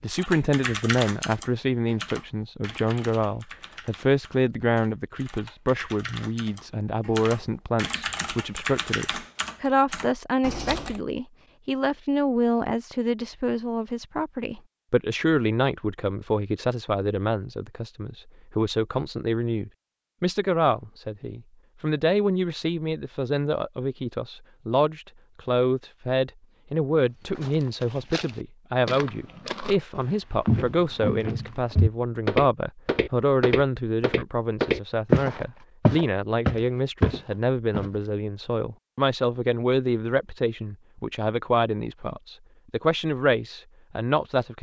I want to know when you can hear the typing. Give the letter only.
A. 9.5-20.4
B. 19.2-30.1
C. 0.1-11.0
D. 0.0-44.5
C.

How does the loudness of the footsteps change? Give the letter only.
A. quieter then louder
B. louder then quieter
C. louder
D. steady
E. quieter
C.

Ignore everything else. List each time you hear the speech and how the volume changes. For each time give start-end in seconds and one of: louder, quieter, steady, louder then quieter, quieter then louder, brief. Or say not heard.
0.0-44.5 steady.